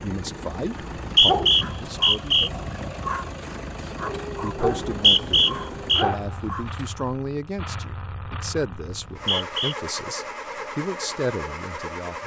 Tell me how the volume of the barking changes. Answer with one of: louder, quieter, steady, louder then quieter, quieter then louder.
louder.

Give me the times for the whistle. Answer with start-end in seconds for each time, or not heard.
0.8-2.5, 4.9-6.0, 8.8-9.8.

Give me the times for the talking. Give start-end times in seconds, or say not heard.
0.0-2.5, 4.4-12.2.